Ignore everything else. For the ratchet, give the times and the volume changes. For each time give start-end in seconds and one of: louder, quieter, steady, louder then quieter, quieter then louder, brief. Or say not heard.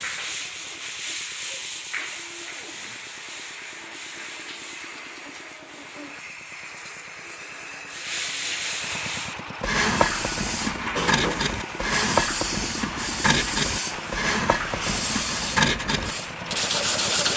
not heard.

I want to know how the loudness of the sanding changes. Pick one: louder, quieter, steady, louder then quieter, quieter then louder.
quieter then louder.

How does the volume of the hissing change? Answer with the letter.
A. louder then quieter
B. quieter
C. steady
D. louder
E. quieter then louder
D.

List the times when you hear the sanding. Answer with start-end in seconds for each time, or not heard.
0.0-6.2, 7.9-17.3.